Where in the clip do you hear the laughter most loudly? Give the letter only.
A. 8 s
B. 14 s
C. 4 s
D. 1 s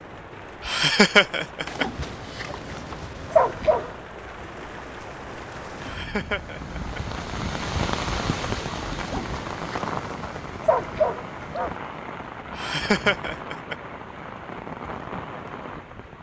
D.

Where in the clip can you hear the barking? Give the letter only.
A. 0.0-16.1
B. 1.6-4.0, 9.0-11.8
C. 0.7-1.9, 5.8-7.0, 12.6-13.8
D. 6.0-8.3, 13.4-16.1
B.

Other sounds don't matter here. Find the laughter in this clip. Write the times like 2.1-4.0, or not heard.
0.7-1.9, 5.8-7.0, 12.6-13.8.